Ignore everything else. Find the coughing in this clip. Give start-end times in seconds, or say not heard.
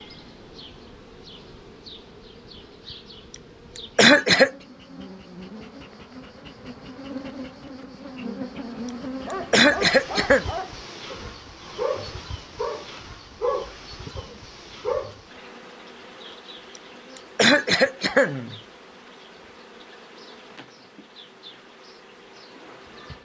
4.0-4.5, 9.5-10.4, 17.4-18.6.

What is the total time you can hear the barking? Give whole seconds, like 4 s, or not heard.
6 s.